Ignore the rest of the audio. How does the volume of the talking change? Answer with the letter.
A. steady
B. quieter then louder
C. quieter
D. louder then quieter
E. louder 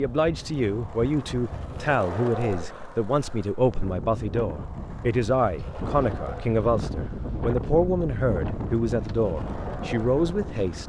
A.